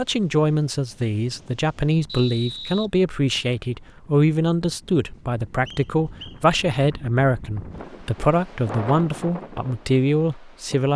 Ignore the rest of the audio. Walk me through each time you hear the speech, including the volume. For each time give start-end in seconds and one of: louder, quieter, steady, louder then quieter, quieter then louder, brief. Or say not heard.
0.0-10.9 steady.